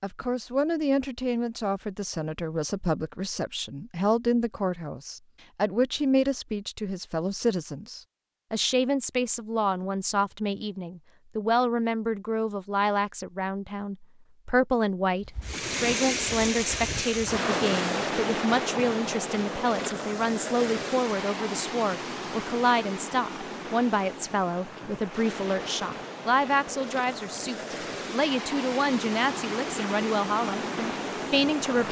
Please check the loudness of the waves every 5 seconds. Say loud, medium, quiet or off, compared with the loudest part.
off, off, off, loud, medium, medium, loud.